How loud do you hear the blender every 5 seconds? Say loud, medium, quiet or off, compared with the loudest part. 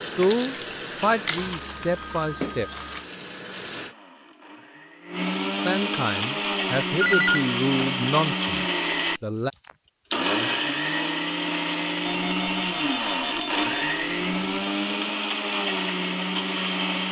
quiet, loud, loud, loud.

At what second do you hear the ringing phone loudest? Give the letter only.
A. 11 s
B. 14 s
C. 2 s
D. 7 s
D.